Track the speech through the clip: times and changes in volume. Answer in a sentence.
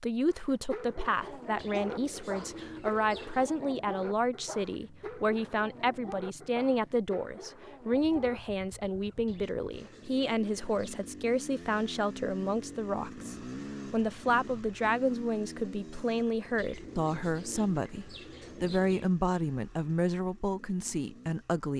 The speech can be heard from 0.0 to 21.7 s, at a steady volume.